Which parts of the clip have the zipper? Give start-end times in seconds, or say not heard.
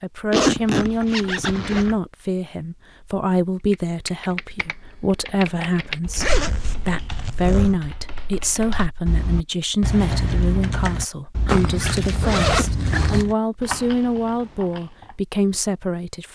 0.3-1.9, 6.2-7.8, 11.4-13.2.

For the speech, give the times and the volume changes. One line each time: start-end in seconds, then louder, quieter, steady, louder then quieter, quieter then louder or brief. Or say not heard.
0.0-16.3 steady.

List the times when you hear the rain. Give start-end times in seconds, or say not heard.
not heard.